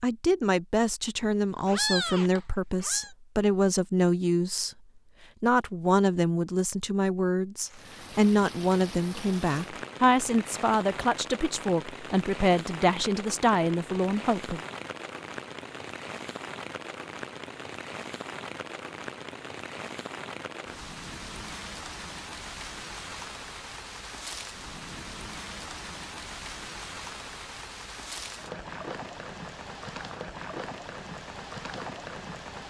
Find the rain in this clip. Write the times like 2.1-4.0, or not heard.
7.6-32.6.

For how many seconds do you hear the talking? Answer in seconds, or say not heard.
14 s.